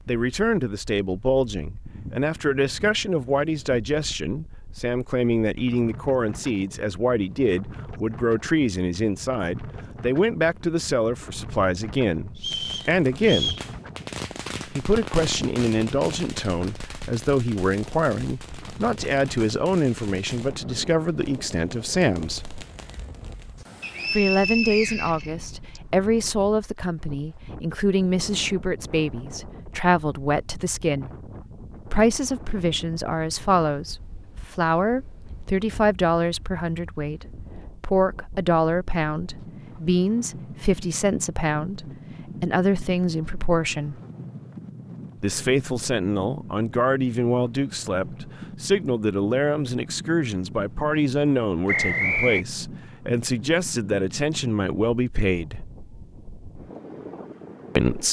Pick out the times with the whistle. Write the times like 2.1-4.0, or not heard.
12.3-13.7, 23.8-25.8, 51.6-52.5.